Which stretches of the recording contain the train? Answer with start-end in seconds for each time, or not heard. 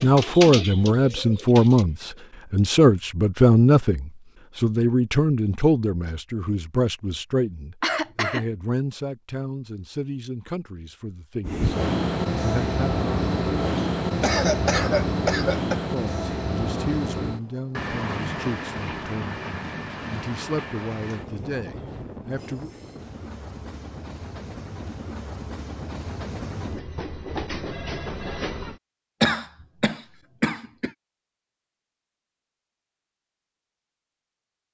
11.4-28.8.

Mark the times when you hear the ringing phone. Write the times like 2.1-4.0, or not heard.
27.6-28.5.